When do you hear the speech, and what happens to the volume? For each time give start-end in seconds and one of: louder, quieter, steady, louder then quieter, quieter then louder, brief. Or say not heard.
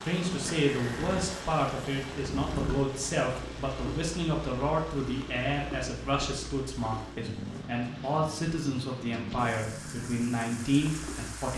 0.0-11.5 steady.